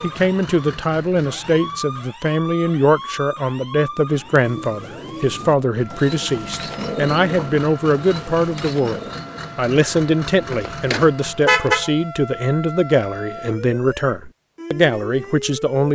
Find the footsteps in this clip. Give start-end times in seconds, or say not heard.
not heard.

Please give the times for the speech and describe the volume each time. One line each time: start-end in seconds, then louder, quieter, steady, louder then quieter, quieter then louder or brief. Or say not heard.
0.0-15.9 steady.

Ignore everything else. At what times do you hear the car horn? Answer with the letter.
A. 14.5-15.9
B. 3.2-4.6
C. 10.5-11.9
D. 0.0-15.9
C.